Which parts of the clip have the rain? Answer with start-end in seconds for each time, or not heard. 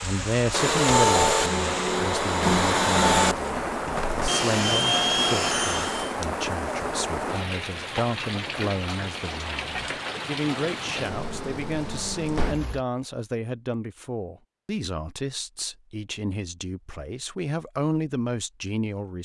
0.0-12.8.